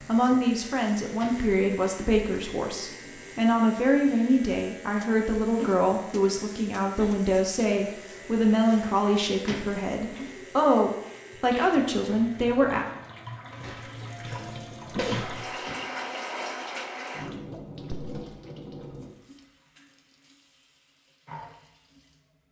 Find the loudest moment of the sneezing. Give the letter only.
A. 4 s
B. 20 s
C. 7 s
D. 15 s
D.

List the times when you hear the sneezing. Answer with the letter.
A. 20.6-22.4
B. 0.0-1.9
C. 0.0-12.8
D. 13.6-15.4
D.